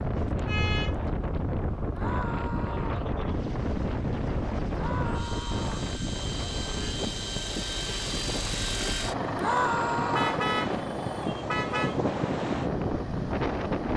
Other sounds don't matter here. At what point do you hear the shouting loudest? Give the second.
10 s.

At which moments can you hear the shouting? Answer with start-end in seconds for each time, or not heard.
1.9-3.1, 4.7-5.8, 9.3-10.4.